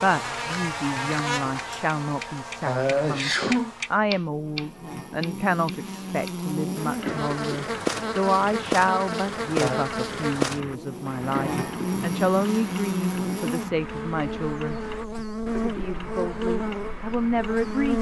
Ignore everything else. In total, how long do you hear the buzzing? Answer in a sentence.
The buzzing can be heard for 18 seconds in total.